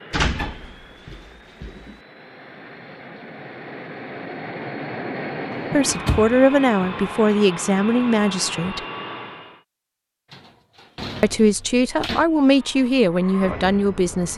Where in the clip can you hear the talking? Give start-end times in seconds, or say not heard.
5.7-8.8, 11.2-14.3.